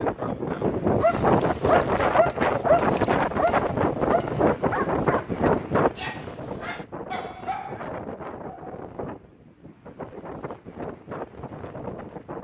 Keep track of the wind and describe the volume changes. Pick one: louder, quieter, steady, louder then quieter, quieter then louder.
quieter.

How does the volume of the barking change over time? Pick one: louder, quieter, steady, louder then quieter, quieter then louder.
quieter.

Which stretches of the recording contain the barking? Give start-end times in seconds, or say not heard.
1.0-8.8.